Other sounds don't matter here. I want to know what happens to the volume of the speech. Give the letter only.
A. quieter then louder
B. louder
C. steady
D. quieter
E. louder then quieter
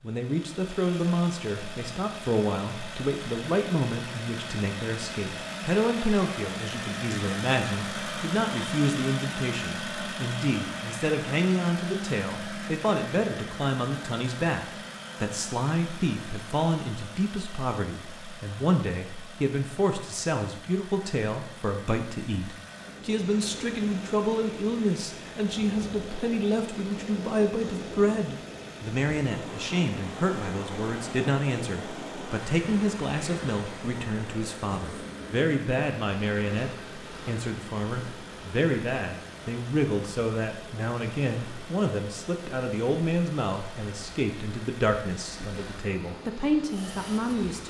C.